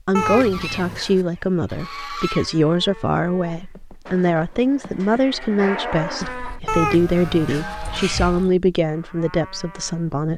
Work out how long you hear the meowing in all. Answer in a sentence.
The meowing can be heard for 3 seconds in total.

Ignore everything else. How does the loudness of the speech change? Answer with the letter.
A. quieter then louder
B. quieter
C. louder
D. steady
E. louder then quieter
D.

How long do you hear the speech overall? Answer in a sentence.
The speech can be heard for 10 seconds in total.